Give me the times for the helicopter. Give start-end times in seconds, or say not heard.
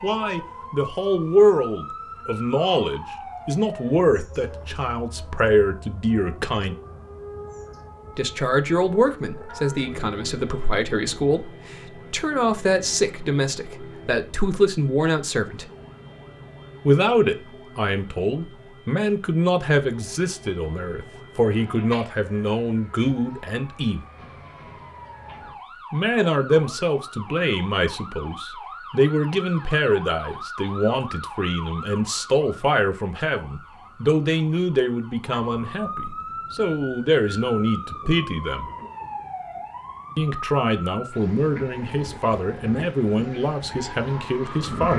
not heard.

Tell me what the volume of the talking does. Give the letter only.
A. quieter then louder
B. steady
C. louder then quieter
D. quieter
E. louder
B.